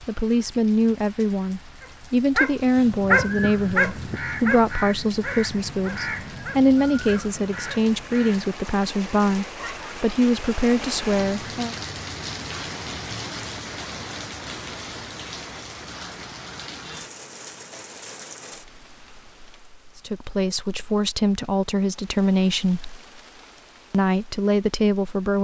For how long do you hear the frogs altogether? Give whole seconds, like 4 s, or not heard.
not heard.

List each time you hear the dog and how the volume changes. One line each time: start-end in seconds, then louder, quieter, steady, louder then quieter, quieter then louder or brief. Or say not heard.
1.8-7.8 quieter.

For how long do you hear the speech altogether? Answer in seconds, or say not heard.
16 s.